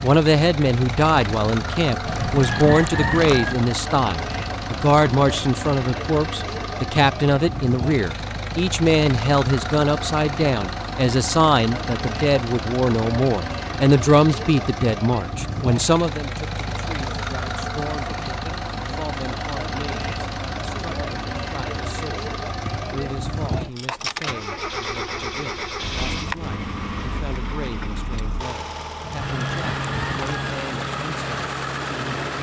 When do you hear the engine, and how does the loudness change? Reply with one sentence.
The engine can be heard from 0.0 to 32.3 s, at a steady volume.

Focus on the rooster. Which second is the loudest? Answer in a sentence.
The loudest moment of the rooster is at 3 seconds.